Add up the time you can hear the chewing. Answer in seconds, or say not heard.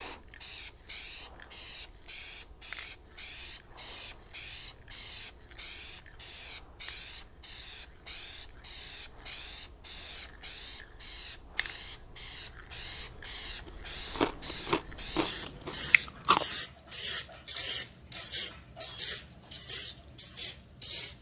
3 s.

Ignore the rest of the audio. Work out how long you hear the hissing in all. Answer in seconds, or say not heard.
21 s.